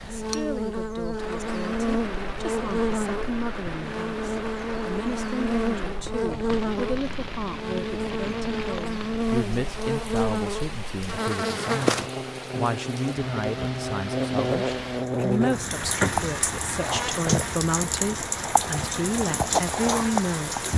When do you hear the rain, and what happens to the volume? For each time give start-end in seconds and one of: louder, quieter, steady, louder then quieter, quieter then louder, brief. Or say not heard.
0.0-20.7 louder.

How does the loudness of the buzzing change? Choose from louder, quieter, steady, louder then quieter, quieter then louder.
quieter.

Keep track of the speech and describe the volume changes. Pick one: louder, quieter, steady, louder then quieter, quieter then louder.
louder.